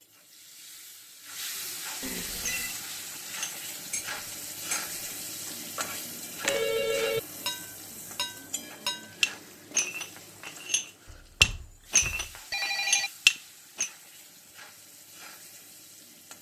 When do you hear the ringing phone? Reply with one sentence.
You can hear the ringing phone from 2.0 to 2.8 s, from 6.5 to 7.2 s and from 11.1 to 13.1 s.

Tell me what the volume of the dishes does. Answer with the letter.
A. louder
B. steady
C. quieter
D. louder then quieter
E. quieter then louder
A.